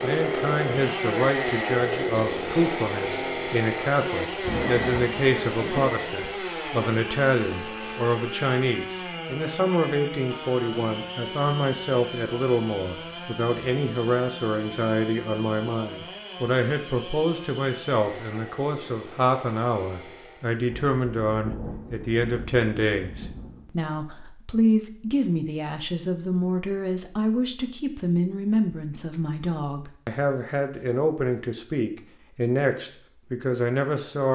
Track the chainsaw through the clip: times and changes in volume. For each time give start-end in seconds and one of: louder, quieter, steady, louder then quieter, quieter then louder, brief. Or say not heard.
0.0-20.6 quieter.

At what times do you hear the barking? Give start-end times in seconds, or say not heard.
not heard.